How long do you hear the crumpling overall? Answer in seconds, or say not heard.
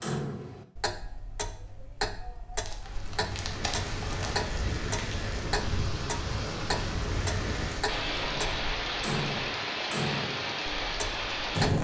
2 s.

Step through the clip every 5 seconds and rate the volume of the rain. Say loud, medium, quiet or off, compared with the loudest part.
medium, loud, loud.